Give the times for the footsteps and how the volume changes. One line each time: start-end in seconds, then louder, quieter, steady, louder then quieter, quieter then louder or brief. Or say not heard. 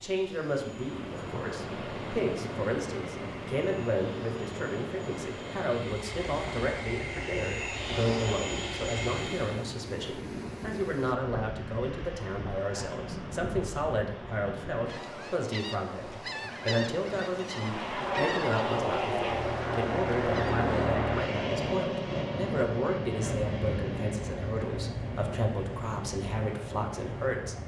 not heard.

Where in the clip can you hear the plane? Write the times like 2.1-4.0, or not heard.
0.0-9.7, 17.5-27.6.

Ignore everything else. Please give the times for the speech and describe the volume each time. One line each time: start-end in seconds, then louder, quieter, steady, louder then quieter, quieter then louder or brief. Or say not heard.
0.0-27.6 steady.